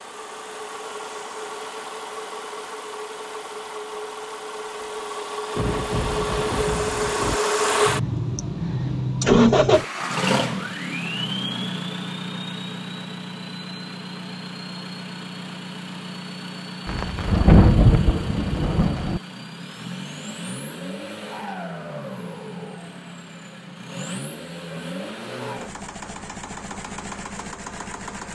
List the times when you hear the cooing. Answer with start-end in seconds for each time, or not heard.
not heard.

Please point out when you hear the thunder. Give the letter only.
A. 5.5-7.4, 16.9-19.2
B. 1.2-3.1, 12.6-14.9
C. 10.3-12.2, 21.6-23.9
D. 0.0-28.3
A.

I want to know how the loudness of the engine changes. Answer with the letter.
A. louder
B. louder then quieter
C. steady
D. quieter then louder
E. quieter
B.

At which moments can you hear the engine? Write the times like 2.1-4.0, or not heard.
0.0-28.3.